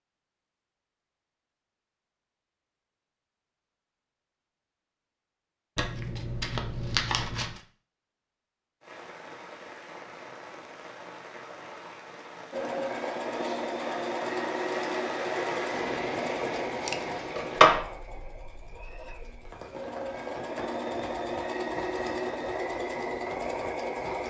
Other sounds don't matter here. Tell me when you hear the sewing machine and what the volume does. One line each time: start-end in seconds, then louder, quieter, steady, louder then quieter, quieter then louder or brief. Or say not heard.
12.5-24.2 quieter then louder.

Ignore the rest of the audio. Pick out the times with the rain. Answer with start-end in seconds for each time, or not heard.
8.8-24.2.